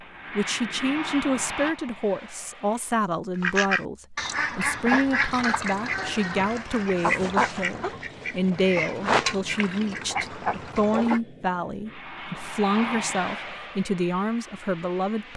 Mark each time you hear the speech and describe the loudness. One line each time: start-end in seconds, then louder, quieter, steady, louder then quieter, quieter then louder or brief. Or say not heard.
0.3-15.3 steady.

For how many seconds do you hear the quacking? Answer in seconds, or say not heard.
8 s.